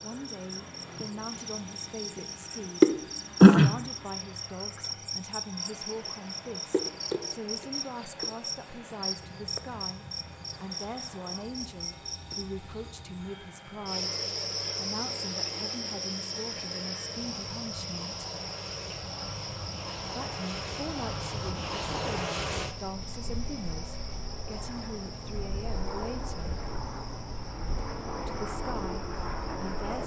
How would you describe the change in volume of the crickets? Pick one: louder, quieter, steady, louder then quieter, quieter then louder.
quieter.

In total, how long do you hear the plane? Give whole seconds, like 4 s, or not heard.
30 s.